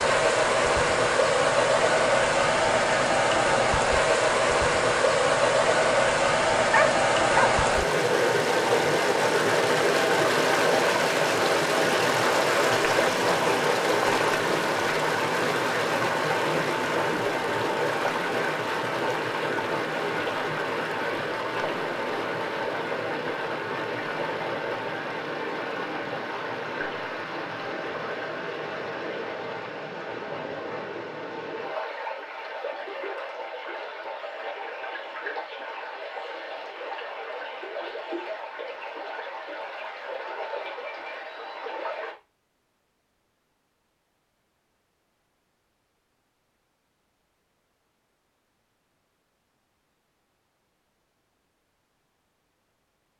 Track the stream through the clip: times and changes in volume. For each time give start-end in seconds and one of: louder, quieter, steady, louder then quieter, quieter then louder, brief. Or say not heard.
0.0-42.1 quieter.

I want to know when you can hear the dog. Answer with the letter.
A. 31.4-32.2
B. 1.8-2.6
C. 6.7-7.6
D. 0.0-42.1
C.